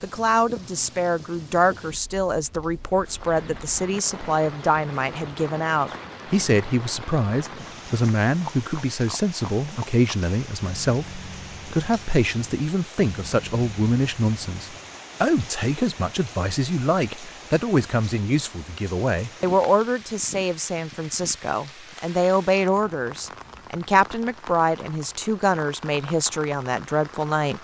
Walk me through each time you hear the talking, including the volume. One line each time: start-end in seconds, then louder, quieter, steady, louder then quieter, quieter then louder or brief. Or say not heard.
0.0-27.5 steady.